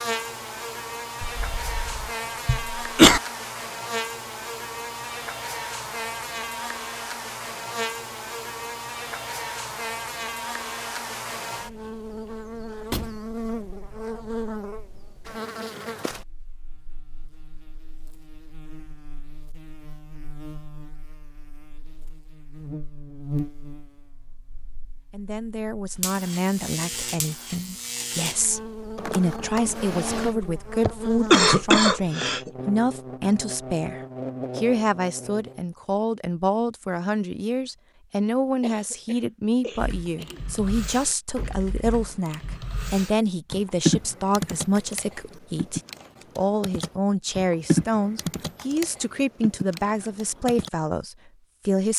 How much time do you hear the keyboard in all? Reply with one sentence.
The keyboard can be heard for 11 seconds in total.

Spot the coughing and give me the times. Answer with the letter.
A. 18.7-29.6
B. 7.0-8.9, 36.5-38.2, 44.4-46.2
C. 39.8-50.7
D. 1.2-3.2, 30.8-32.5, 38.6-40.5
D.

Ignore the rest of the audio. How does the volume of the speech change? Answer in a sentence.
The loudness of the speech stays about the same.